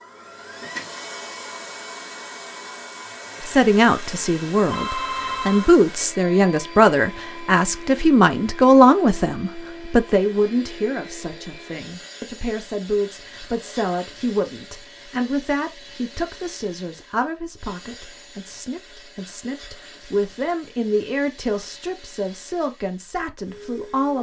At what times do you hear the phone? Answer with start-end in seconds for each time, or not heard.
4.7-5.8.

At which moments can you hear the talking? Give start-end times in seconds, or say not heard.
3.4-24.1.